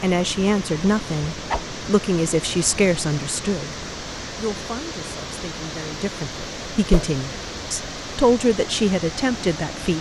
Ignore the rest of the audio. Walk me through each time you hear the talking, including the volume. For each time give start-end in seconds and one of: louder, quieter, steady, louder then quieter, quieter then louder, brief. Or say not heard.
0.0-9.9 quieter then louder.